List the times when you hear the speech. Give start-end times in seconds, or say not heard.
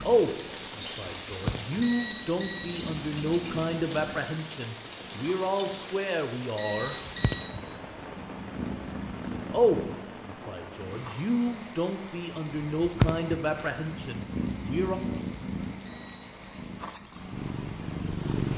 0.0-7.0, 9.5-15.0.